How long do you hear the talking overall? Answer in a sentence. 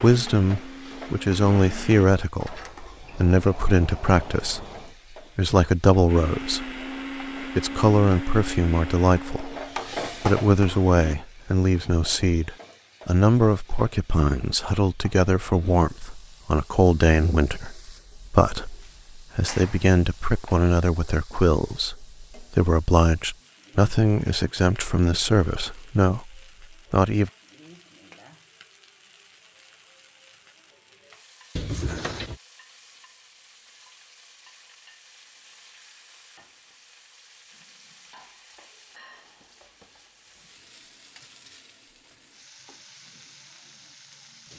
You can hear the talking for 25 seconds altogether.